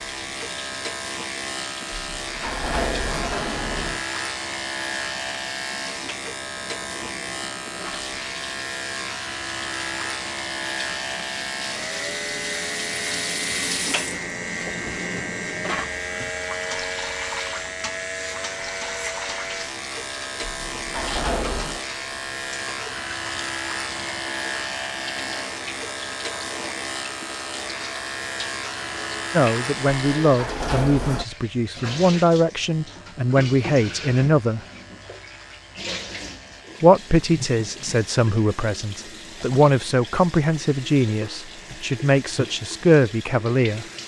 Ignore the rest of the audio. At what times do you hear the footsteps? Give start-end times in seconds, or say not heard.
not heard.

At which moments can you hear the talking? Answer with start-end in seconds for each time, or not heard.
29.3-34.6, 36.8-43.9.